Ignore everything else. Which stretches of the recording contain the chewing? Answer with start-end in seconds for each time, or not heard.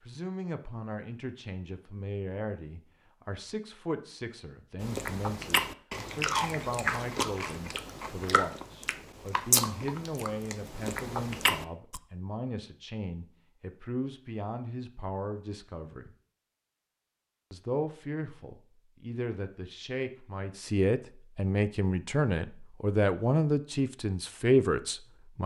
4.8-12.0.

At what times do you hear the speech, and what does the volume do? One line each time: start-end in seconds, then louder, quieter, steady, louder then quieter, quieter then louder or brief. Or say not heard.
0.0-16.1 steady
17.5-25.4 louder.